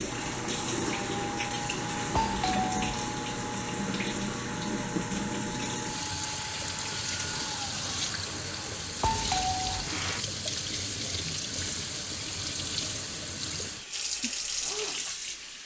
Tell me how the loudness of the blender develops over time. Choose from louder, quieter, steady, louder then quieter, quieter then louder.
quieter.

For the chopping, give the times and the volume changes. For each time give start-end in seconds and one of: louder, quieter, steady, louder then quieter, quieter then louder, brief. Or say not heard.
not heard.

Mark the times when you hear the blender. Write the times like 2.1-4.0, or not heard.
0.0-10.2.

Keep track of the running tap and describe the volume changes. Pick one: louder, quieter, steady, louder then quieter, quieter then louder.
steady.